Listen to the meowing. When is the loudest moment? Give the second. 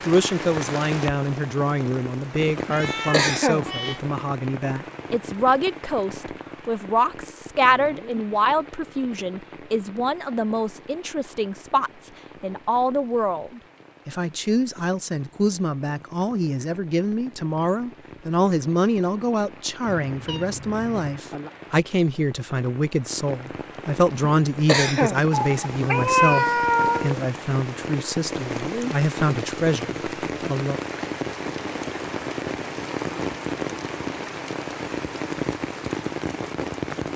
26 s.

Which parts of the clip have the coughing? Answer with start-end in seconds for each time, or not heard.
2.5-3.6, 24.1-25.2.